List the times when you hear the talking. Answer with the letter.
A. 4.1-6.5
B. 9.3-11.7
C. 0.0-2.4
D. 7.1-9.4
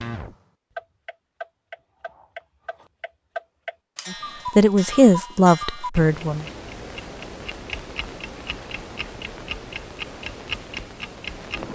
A.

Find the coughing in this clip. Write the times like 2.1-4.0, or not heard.
not heard.